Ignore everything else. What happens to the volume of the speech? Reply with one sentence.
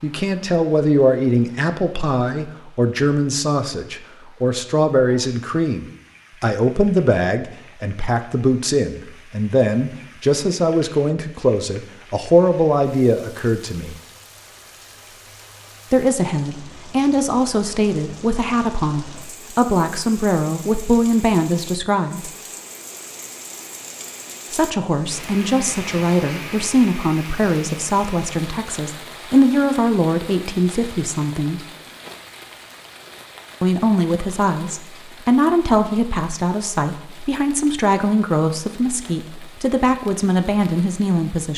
The volume of the speech stays about the same.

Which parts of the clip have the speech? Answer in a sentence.
You can hear the speech from 0.0 to 14.0 s, from 15.9 to 22.3 s, from 24.5 to 31.6 s and from 33.6 to 41.5 s.